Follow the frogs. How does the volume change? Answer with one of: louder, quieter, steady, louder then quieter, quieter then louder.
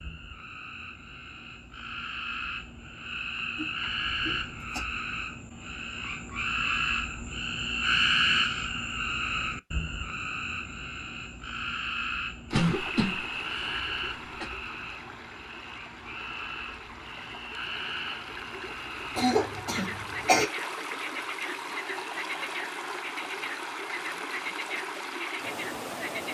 louder then quieter.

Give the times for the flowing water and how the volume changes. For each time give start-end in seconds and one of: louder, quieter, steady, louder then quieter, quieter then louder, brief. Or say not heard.
12.5-26.2 louder.